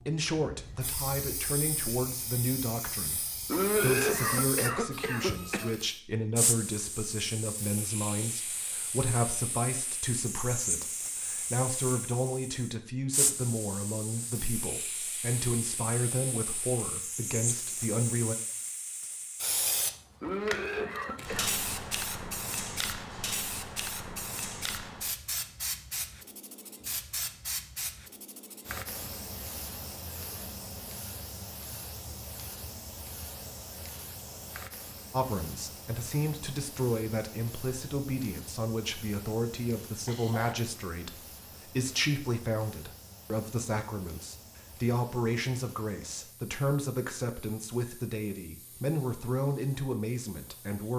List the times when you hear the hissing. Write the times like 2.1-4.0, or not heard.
0.0-50.9.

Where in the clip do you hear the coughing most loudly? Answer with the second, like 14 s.
4 s.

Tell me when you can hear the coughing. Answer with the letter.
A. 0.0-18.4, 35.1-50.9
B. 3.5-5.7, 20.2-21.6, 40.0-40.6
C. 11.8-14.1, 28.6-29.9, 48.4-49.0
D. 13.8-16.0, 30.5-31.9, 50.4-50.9
B.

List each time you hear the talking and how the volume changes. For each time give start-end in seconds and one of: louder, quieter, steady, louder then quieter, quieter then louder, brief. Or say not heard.
0.0-18.4 steady
35.1-50.9 steady.